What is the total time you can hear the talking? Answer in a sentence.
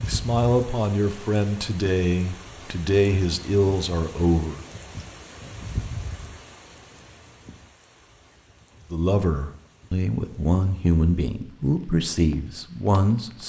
The talking can be heard for 9 seconds in total.